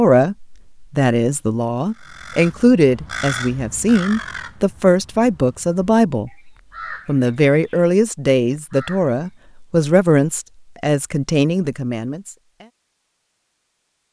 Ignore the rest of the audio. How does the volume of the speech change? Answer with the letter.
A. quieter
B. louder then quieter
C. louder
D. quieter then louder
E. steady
E.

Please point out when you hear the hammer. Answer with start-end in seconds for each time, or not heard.
not heard.